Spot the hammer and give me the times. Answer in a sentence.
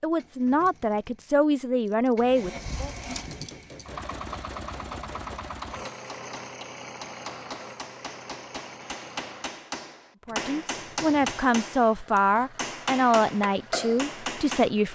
You can hear the hammer from 3.2 to 14.7 s.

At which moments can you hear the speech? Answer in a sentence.
You can hear the speech from 0.0 to 2.9 s and from 10.2 to 14.9 s.